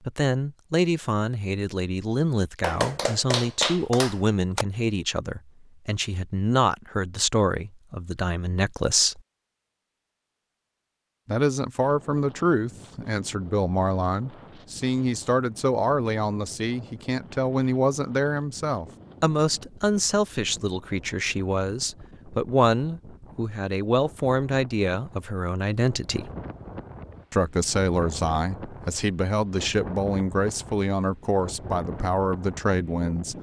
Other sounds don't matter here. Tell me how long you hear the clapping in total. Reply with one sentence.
You can hear the clapping for 2 seconds altogether.